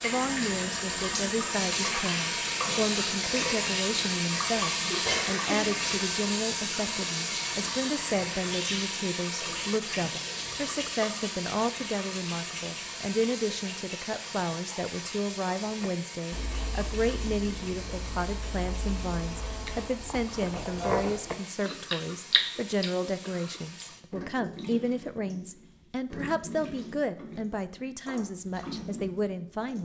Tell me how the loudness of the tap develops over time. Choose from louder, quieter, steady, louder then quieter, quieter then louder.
quieter.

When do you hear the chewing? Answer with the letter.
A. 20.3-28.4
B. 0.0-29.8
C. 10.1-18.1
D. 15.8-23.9
D.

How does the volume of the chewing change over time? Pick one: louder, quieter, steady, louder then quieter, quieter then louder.
louder.